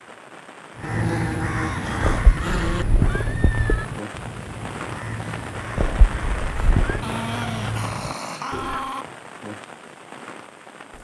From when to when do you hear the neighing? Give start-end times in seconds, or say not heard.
2.0-3.9, 5.8-7.0.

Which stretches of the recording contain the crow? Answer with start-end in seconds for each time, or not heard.
0.8-8.9.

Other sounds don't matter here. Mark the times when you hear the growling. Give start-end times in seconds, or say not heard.
0.8-2.9, 7.0-9.1.